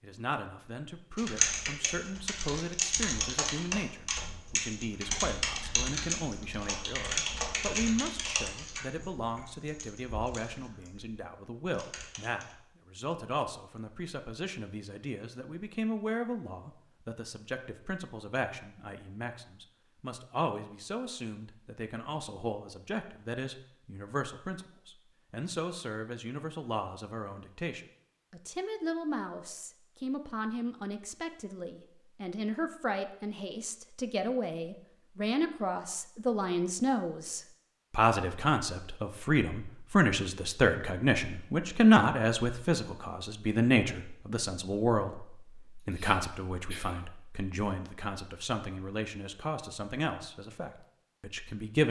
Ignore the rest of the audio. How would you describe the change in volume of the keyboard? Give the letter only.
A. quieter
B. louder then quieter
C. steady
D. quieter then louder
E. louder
A.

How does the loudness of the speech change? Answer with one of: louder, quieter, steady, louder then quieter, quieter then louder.
louder.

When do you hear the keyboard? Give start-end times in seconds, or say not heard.
1.1-12.6.